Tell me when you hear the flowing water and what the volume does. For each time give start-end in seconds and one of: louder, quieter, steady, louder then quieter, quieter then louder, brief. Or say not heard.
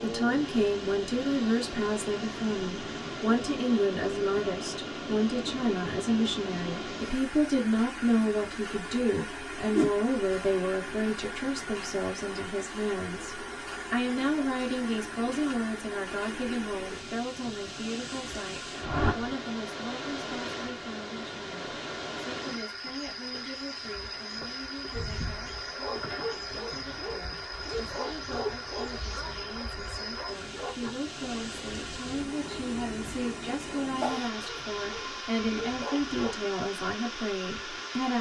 0.0-38.1 steady.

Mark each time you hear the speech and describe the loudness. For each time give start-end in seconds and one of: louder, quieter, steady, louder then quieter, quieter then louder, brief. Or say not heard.
0.0-38.1 quieter then louder.